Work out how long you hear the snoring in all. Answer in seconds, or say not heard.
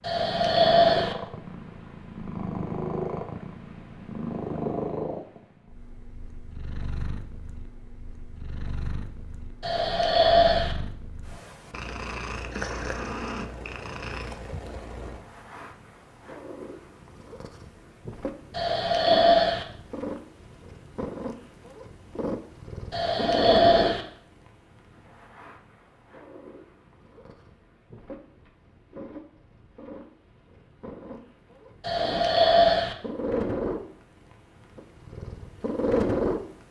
6 s.